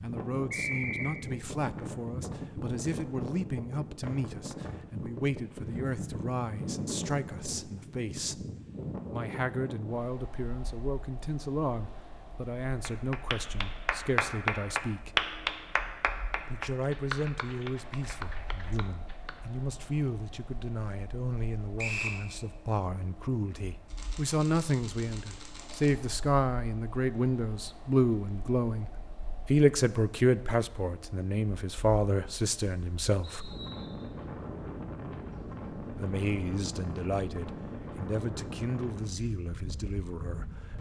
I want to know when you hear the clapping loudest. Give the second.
15 s.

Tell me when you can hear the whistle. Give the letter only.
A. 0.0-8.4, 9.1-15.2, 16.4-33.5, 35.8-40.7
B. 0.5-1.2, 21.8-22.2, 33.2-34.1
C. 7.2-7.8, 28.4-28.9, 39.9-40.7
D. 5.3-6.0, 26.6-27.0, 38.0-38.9
B.